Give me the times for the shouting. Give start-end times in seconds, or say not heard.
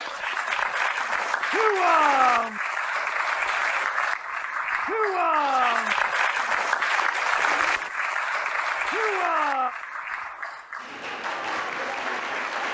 1.5-2.6, 4.8-6.0, 8.9-9.8.